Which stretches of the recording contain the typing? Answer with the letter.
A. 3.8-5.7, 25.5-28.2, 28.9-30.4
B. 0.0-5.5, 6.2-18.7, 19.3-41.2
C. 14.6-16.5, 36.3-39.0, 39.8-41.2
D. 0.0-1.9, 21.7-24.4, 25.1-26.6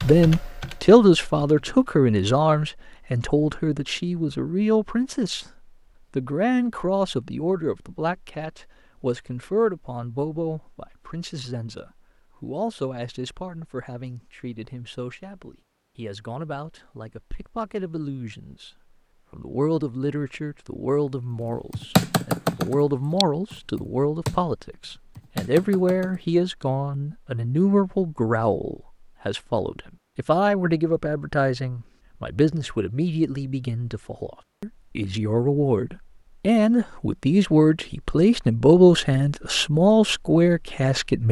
D.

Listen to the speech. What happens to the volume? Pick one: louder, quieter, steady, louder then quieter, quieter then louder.
quieter then louder.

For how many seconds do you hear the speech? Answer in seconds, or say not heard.
40 s.